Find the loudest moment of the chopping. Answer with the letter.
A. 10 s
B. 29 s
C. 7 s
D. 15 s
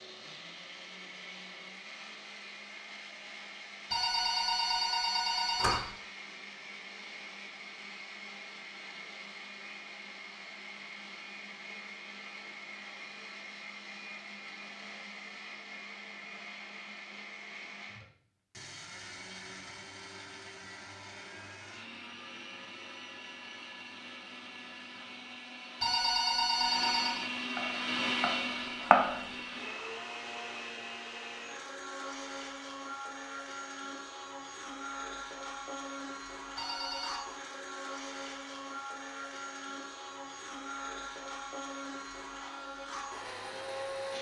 B.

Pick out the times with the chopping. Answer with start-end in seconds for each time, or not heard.
27.6-29.2.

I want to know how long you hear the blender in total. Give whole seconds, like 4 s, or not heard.
44 s.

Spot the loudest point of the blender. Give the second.
28 s.